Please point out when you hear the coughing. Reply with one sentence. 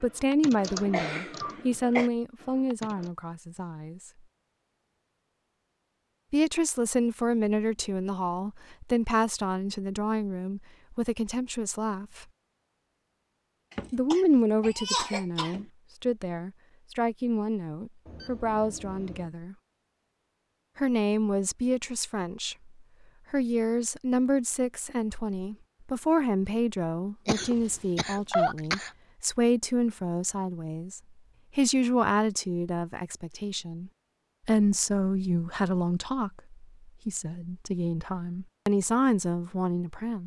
You can hear the coughing from 0.9 to 2.1 s, from 13.7 to 15.7 s and from 27.2 to 28.9 s.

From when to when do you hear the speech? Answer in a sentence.
The speech can be heard from 0.0 to 4.1 s, from 6.3 to 12.2 s, from 13.9 to 19.6 s, from 20.8 to 22.7 s and from 23.3 to 40.2 s.